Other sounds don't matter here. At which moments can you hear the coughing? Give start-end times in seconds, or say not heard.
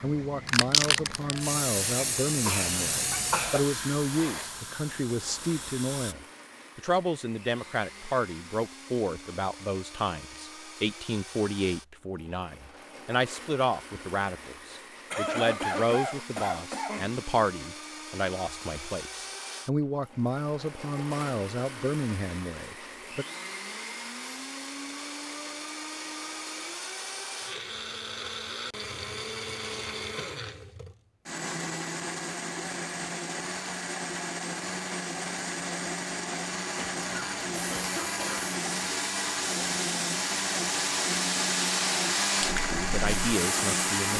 1.9-3.6, 15.1-17.1, 36.8-38.5.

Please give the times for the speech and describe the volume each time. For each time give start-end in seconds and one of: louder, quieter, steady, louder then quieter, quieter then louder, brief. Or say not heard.
0.0-23.2 steady
42.7-44.1 brief.